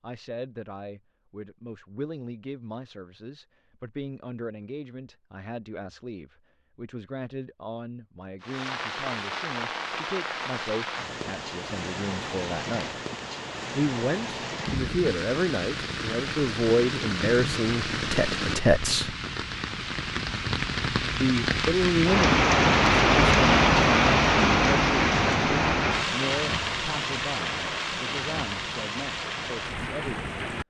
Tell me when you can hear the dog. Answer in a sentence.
The dog can't be heard in this clip.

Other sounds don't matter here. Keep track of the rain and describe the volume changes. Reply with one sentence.
The volume of the rain goes up, then down.